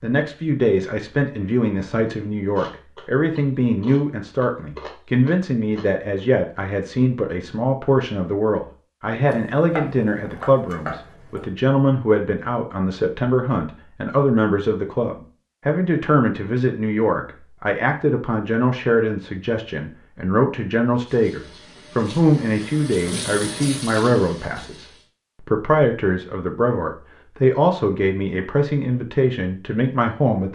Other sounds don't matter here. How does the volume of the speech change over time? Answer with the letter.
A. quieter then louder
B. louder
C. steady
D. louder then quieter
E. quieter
C.